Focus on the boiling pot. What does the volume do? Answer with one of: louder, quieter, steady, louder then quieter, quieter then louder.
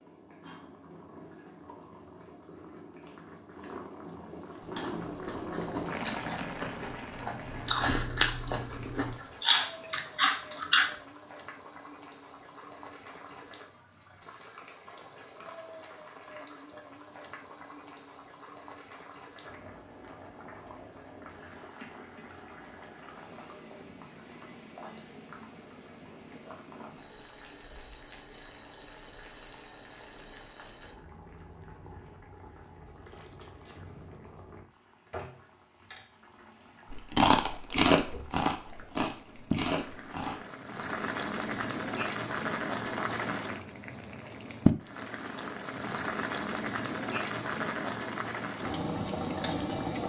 quieter then louder.